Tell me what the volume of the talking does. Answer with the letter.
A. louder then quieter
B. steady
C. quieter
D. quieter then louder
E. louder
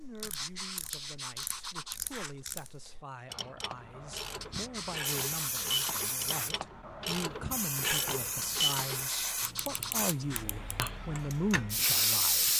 E.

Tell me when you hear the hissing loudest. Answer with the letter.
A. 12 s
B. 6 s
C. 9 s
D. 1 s
A.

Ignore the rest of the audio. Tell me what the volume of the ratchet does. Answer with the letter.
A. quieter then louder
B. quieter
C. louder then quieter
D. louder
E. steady
C.